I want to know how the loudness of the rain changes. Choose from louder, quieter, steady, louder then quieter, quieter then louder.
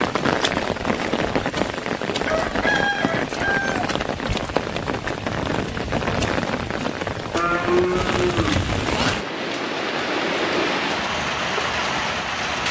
steady.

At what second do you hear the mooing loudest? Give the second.
8 s.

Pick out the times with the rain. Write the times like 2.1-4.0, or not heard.
0.0-12.6.